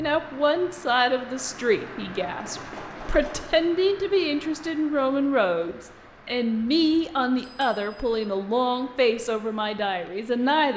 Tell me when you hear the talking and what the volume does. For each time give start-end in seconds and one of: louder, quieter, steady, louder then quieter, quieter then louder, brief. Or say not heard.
0.0-10.7 steady.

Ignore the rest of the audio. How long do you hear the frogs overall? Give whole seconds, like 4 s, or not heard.
not heard.